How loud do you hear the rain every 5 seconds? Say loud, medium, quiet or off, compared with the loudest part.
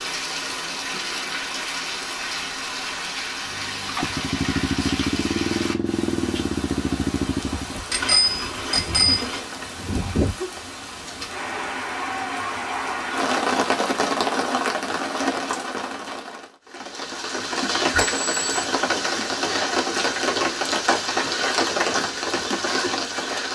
medium, medium, loud, loud, loud.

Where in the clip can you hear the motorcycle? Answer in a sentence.
The motorcycle can be heard from 3.5 to 7.8 s.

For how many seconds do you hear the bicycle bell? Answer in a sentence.
The bicycle bell can be heard for 2 seconds in total.